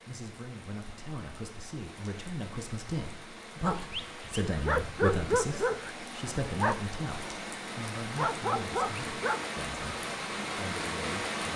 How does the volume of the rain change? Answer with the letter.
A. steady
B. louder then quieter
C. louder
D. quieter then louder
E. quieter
C.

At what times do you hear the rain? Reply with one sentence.
The rain can be heard from 0.0 to 11.5 s.